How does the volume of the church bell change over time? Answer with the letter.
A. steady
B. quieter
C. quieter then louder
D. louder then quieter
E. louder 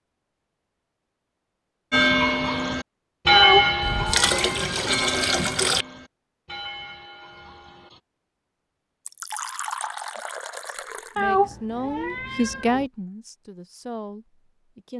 B.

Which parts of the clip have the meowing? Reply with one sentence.
The meowing can be heard from 3.3 to 5.0 s and from 11.2 to 12.8 s.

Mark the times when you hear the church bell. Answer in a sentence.
The church bell can be heard from 1.9 to 8.0 s.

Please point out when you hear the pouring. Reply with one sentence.
The pouring can be heard from 3.8 to 5.8 s and from 9.1 to 11.2 s.